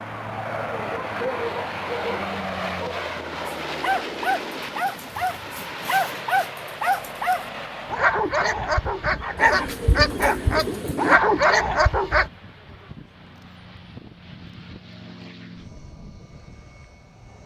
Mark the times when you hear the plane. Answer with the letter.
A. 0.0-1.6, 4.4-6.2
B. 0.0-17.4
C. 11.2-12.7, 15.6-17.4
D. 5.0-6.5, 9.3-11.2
B.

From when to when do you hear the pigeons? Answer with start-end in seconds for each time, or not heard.
5.0-6.5, 9.3-11.2.